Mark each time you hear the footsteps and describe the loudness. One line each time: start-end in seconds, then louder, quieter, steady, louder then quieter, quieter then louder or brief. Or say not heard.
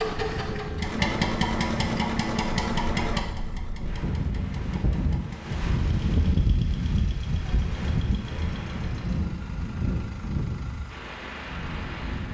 not heard.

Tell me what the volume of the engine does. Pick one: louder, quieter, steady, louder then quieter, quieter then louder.
quieter.